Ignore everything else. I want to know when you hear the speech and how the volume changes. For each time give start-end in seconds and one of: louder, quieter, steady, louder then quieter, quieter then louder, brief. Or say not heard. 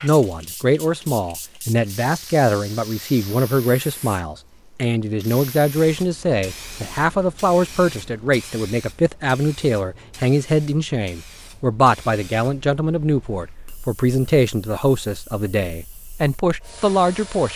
0.0-17.5 steady.